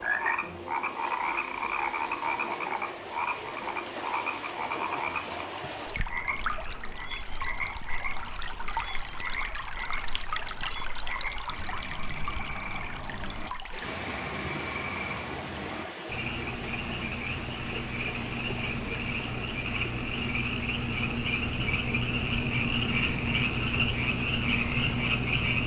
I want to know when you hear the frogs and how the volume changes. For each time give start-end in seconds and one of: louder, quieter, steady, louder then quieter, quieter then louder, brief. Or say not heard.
0.0-25.6 quieter then louder.